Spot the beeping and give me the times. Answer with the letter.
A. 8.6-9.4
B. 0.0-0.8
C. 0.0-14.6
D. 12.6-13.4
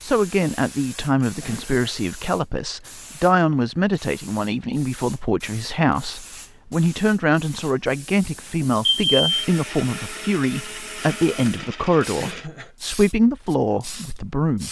A.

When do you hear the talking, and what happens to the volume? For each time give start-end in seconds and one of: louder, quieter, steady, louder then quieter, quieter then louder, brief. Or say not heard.
0.0-14.6 steady.